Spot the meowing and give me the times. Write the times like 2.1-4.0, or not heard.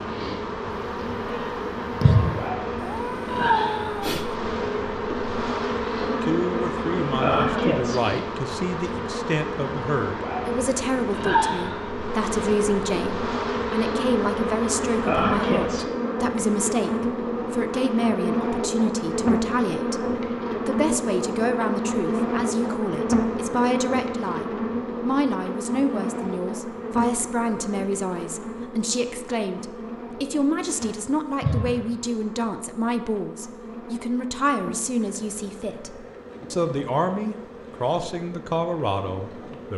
2.8-4.3.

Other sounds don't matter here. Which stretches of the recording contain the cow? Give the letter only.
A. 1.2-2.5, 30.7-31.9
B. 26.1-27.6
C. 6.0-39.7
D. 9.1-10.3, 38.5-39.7
A.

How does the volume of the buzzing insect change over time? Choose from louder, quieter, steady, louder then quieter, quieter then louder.
quieter.